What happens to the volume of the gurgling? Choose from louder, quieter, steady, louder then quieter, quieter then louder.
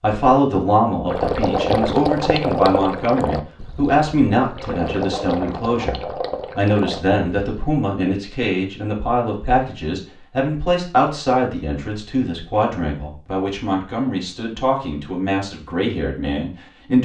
quieter then louder.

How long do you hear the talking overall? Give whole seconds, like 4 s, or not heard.
17 s.